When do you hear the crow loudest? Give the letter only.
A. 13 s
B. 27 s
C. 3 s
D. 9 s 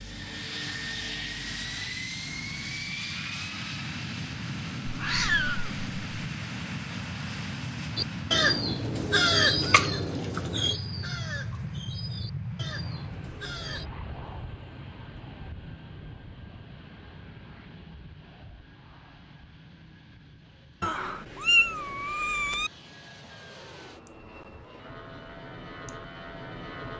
D.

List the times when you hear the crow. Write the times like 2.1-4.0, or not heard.
8.0-13.8.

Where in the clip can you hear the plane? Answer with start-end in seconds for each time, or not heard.
0.0-26.9.